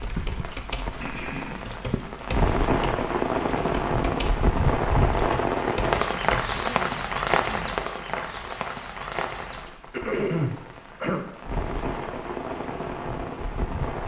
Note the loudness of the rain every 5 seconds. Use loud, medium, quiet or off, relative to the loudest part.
loud, loud, medium.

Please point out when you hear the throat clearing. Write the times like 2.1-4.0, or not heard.
0.9-1.6, 6.5-7.7, 9.9-11.2.